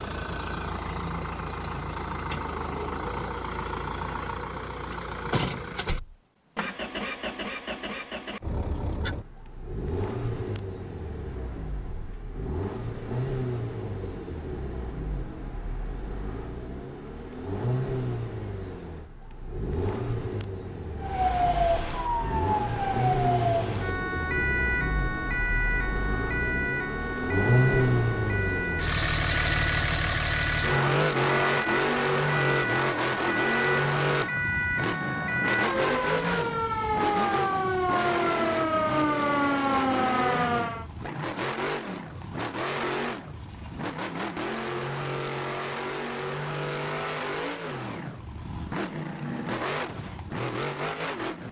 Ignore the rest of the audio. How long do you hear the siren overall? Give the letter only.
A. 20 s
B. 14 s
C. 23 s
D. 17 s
A.